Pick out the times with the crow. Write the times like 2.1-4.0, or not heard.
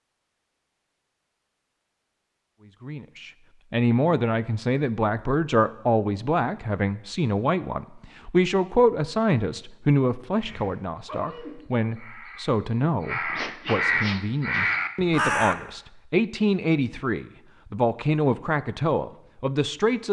10.4-15.7.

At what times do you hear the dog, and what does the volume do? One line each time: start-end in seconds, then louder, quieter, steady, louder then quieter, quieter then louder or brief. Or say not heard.
not heard.